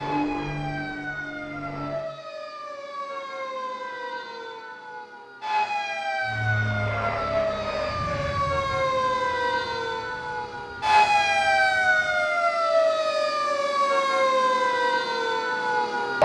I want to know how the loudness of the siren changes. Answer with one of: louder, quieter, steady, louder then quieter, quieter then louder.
louder.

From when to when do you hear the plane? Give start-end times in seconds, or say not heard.
0.0-2.0, 6.2-12.3.